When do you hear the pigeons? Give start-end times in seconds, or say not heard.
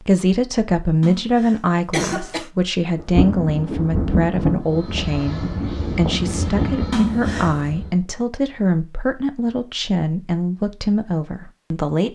not heard.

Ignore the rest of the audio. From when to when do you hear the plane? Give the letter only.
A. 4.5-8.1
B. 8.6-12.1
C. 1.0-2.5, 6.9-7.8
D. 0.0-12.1
A.